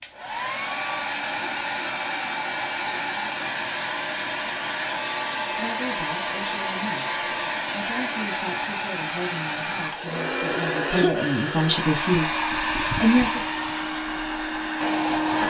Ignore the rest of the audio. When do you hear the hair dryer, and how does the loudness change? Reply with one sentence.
The hair dryer can be heard from 0.0 to 15.4 s, at a steady volume.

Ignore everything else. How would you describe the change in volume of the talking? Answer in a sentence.
The loudness of the talking goes up.